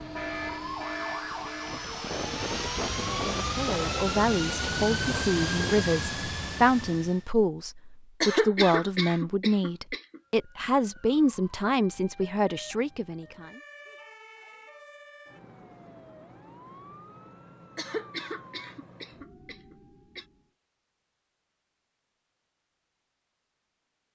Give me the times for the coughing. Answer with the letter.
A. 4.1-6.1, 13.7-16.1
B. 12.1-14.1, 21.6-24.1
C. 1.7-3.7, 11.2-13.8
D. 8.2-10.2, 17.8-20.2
D.